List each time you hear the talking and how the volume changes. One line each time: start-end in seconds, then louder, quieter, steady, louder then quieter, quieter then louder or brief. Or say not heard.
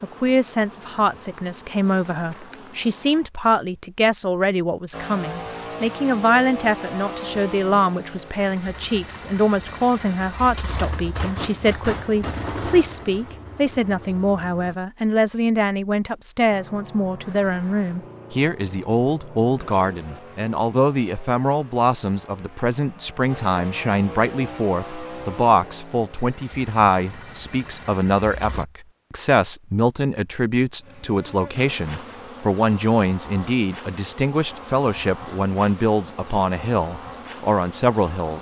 0.0-38.3 steady.